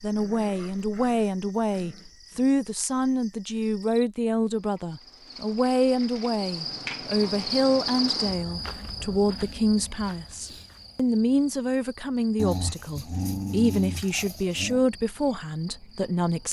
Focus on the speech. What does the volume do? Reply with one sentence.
The volume of the speech stays about the same.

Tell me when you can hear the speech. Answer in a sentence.
You can hear the speech from 0.0 to 16.4 s.